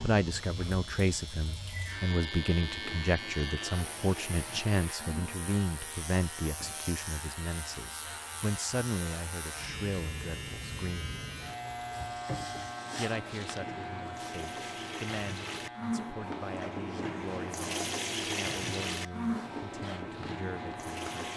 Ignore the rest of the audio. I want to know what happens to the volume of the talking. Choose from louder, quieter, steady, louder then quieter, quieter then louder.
quieter.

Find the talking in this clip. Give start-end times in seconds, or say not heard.
0.0-11.2, 12.9-21.1.